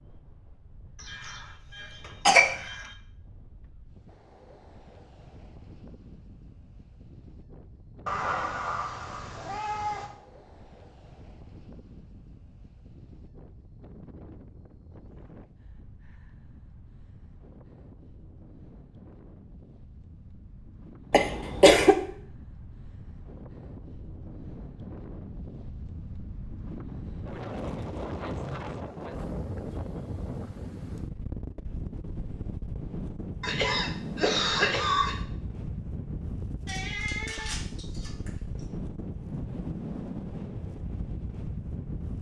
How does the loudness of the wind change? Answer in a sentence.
The volume of the wind goes up.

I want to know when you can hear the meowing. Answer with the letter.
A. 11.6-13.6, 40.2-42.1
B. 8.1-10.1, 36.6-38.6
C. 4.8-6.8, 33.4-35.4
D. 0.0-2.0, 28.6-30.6
B.